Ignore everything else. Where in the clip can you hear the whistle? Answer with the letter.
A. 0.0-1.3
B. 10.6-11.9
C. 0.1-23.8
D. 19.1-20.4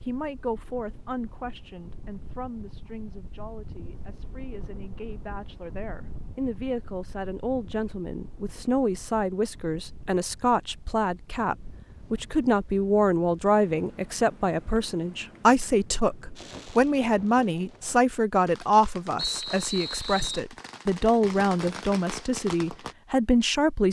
D.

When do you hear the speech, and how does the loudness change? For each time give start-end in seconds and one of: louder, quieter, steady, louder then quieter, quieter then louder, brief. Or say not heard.
0.1-23.8 louder.